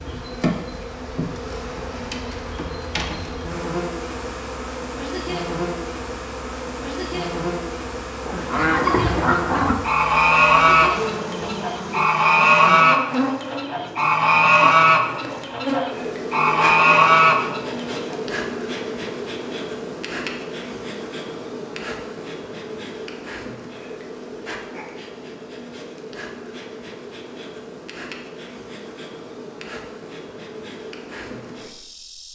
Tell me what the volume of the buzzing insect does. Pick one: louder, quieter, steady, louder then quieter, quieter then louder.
quieter.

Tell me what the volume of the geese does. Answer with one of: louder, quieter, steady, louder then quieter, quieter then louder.
steady.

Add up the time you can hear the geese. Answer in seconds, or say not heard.
10 s.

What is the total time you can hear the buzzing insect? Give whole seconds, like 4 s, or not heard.
32 s.